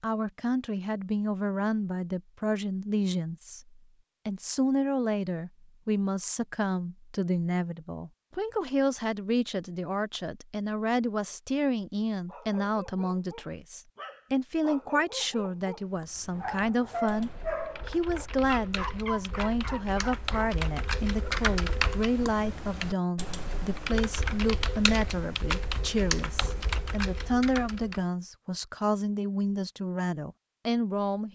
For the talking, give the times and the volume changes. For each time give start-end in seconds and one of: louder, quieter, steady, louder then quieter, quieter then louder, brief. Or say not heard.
0.0-31.3 steady.